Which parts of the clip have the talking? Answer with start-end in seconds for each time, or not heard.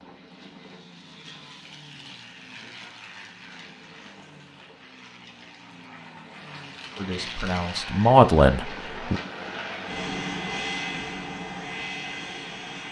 7.0-9.2.